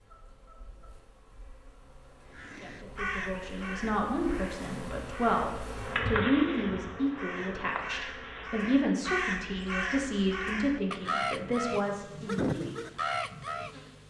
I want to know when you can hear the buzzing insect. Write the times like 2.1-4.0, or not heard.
0.0-14.0.